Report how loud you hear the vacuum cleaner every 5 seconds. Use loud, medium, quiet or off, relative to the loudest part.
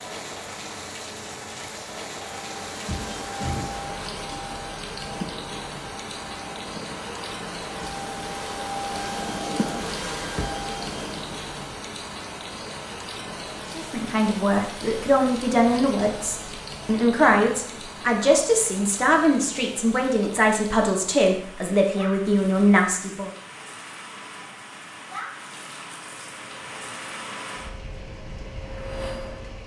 loud, loud, loud, off, off, medium.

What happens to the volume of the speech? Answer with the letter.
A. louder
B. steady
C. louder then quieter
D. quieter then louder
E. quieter
B.